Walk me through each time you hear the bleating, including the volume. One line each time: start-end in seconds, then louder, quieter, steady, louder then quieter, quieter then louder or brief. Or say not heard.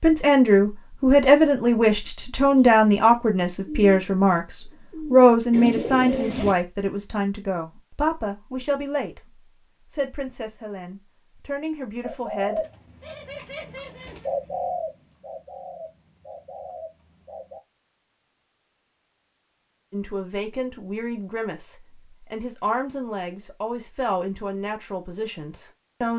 not heard.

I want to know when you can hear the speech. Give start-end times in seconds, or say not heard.
0.0-12.7, 19.9-26.1.